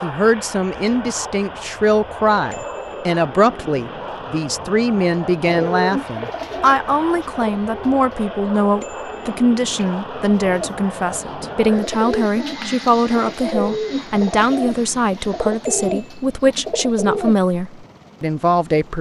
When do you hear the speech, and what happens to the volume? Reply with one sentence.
The speech can be heard from 0.0 to 18.9 s, at a steady volume.